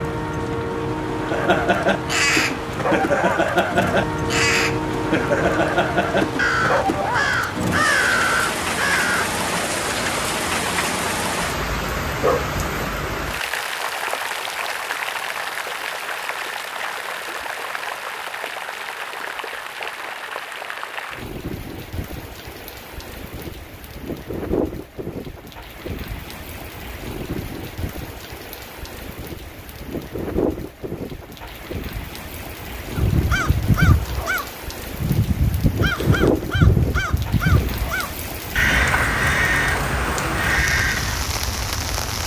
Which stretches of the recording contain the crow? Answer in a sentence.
You can hear the crow from 1.2 to 9.3 s and from 33.0 to 41.3 s.